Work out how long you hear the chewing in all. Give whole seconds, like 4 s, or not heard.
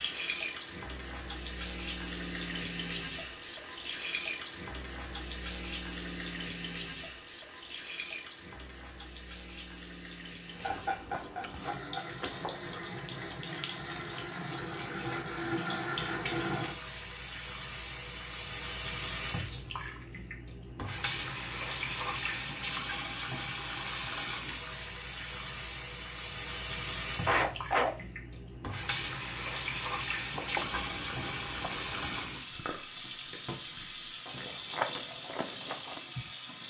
8 s.